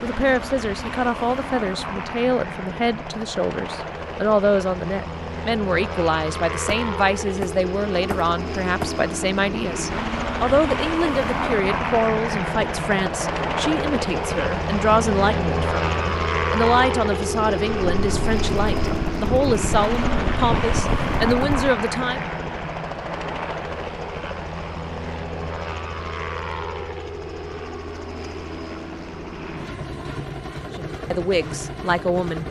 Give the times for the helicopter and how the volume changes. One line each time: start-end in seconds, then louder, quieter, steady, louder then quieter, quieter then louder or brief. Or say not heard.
0.0-32.4 louder then quieter.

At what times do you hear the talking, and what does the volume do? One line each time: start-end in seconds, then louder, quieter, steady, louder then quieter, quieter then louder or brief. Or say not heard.
0.0-22.2 steady
30.8-32.4 brief.